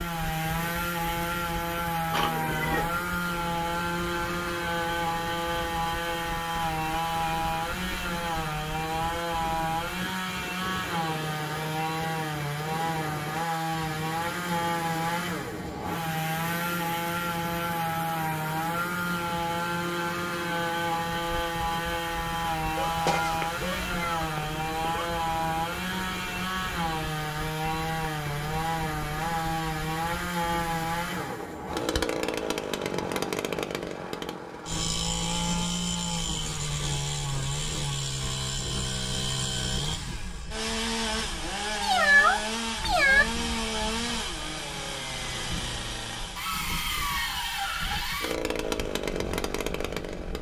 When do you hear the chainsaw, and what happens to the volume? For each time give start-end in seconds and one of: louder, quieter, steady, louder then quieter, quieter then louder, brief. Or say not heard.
0.0-50.3 steady.